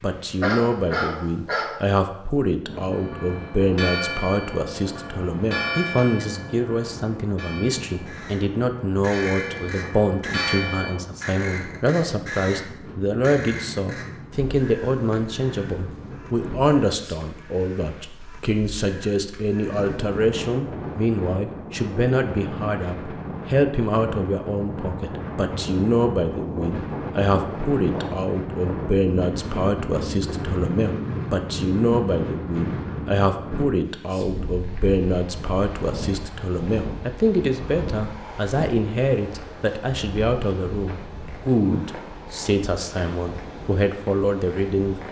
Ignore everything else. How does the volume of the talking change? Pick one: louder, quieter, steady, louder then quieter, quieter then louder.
steady.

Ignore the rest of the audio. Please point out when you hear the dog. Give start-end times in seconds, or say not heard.
0.3-1.9.